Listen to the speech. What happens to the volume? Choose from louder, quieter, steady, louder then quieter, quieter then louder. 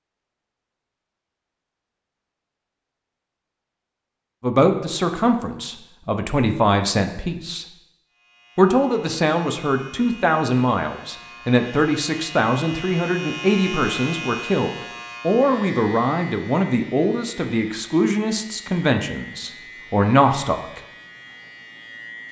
steady.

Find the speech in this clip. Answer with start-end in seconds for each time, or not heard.
4.4-7.7, 8.6-20.8.